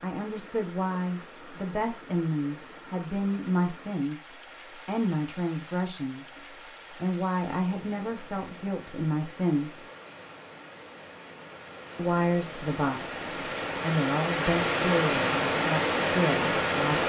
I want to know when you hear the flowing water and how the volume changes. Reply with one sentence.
The flowing water can be heard from 0.0 to 17.0 s, getting louder.